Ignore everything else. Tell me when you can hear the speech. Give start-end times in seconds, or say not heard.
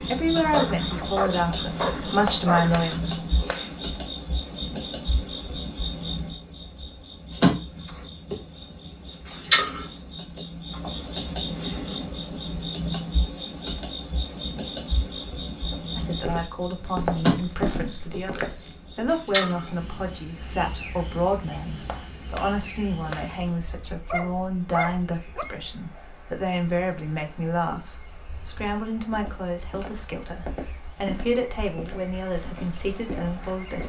0.1-3.2, 15.9-33.8.